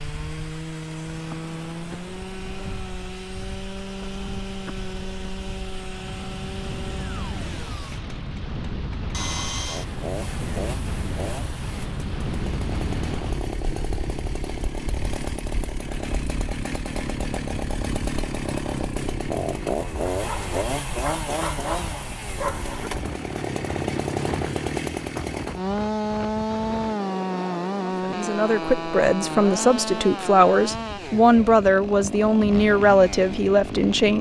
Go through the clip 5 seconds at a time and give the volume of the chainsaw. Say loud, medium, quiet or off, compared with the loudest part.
medium, medium, medium, loud, loud, loud, medium.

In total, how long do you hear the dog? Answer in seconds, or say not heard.
3 s.